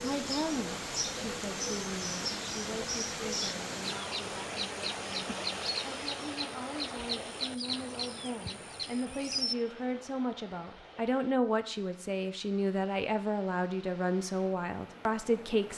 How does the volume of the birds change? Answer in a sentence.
The loudness of the birds stays about the same.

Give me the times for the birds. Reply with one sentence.
The birds can be heard from 0.0 to 9.6 s.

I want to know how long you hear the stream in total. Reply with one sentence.
You can hear the stream for 16 seconds altogether.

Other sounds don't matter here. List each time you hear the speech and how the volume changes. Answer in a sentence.
You can hear the speech from 0.0 to 15.7 s, getting quieter then louder.